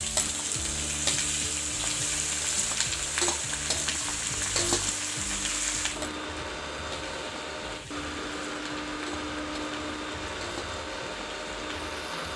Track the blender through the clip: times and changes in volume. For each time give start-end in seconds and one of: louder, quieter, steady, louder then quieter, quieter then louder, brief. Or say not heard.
0.1-12.3 louder.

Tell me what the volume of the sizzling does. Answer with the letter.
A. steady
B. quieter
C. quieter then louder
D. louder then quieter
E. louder
B.